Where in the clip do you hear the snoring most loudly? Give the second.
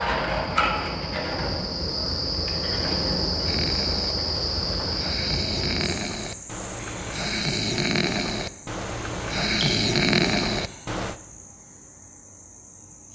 10 s.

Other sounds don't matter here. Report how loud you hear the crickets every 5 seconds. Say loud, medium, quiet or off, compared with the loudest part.
loud, medium, quiet.